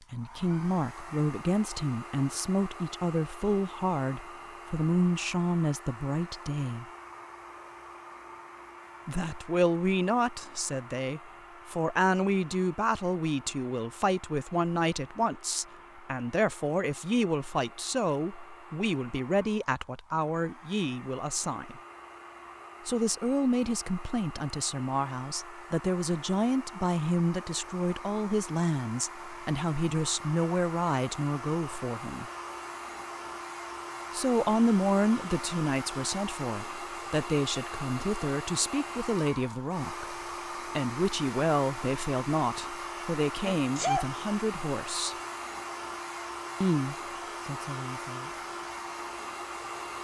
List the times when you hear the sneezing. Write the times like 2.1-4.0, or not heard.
43.4-44.1.